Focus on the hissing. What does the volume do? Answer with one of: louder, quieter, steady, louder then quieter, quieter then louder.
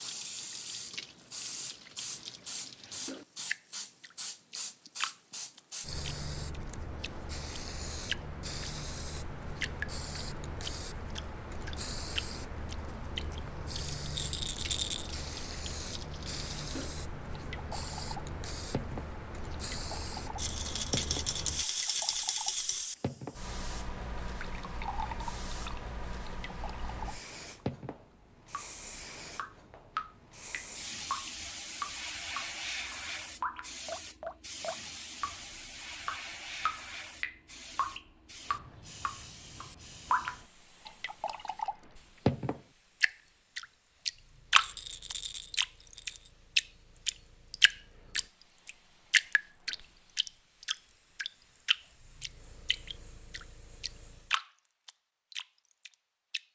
quieter.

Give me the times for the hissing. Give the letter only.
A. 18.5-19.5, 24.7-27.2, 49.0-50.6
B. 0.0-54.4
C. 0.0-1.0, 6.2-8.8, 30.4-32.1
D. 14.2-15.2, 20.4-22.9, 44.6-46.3
B.